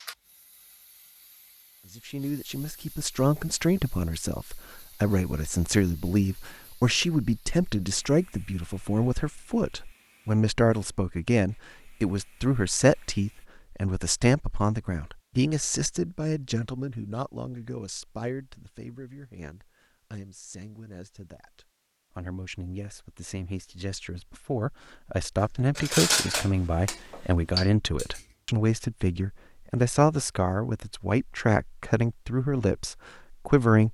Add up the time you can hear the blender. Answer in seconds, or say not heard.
not heard.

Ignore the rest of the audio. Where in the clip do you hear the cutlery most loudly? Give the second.
26 s.